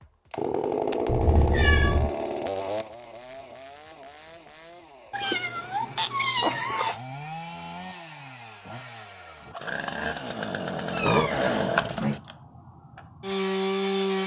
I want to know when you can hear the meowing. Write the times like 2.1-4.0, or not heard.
1.1-2.1, 5.1-7.0, 10.9-12.2.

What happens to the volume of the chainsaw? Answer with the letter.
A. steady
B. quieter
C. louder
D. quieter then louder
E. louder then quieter
D.